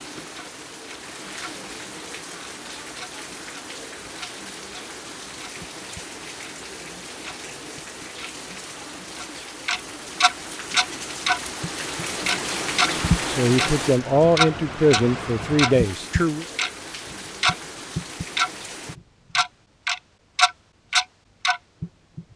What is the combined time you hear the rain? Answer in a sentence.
You can hear the rain for 19 seconds altogether.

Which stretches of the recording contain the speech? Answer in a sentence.
You can hear the speech from 13.2 to 16.4 s.